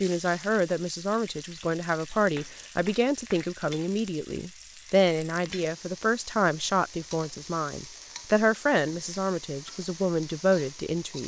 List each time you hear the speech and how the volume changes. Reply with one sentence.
You can hear the speech from 0.0 to 11.2 s, at a steady volume.